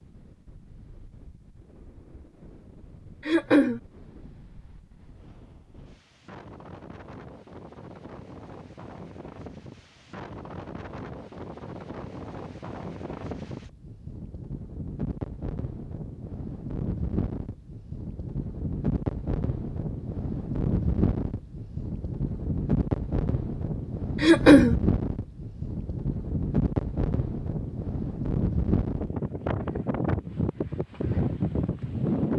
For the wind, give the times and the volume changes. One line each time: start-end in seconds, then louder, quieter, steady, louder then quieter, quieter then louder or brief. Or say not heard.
0.0-32.3 louder.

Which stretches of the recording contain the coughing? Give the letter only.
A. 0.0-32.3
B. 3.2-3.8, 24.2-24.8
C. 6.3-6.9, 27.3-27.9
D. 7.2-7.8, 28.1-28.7
B.